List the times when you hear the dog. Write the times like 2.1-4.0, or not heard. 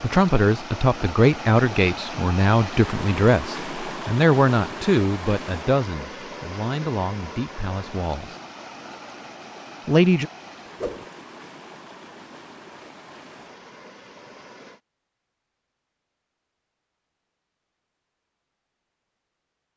not heard.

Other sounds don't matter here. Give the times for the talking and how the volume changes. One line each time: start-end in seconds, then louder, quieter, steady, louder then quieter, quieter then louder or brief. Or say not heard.
0.0-8.3 quieter
9.8-10.3 brief.